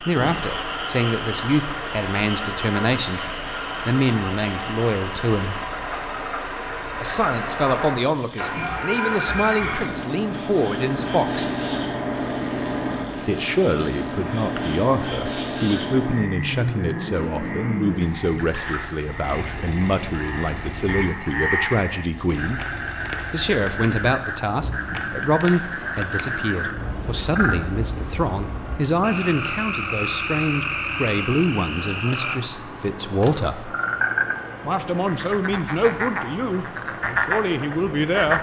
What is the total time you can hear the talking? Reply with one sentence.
You can hear the talking for 33 seconds altogether.